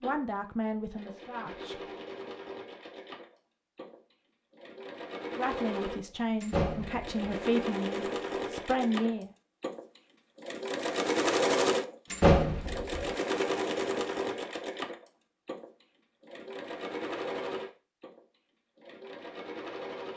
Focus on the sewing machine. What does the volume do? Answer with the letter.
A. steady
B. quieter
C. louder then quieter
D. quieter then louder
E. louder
C.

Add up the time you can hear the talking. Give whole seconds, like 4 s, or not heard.
6 s.